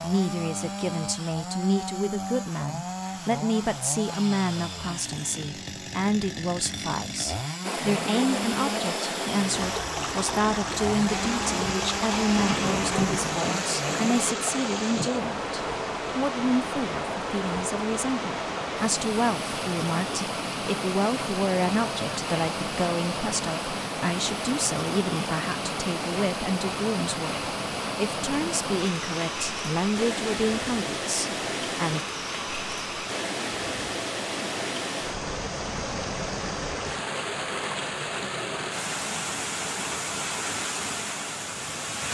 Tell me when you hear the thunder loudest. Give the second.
13 s.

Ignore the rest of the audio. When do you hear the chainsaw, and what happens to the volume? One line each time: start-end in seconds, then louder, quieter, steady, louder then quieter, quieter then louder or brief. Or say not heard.
0.0-14.3 steady.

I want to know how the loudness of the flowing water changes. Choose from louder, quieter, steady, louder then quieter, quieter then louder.
steady.